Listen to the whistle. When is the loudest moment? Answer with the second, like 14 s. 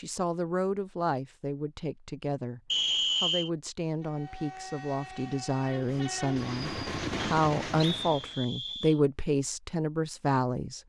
3 s.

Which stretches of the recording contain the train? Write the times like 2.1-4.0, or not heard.
4.0-8.4.